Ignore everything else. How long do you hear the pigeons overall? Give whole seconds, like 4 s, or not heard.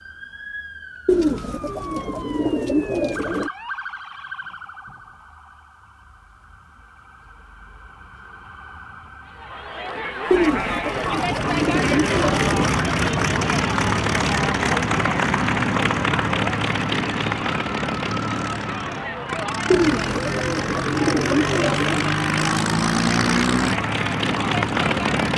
7 s.